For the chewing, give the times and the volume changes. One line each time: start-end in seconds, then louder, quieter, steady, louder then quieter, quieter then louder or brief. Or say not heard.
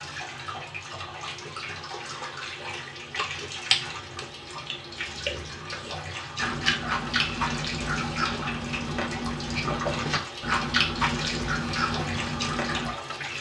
1.4-12.9 quieter then louder.